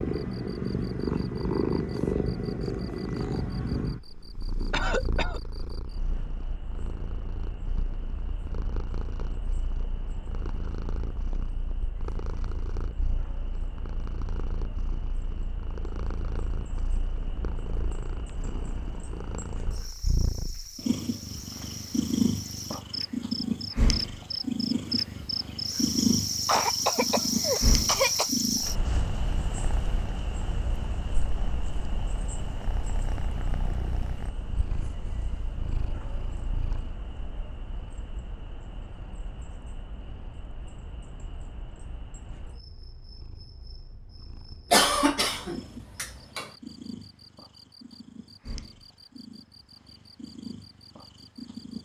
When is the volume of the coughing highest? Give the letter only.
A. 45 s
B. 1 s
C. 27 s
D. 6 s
A.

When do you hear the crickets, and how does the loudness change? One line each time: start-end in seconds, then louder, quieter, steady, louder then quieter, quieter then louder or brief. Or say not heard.
0.1-51.8 louder then quieter.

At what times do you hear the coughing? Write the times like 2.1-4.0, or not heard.
4.7-5.4, 26.4-28.3, 44.7-46.5.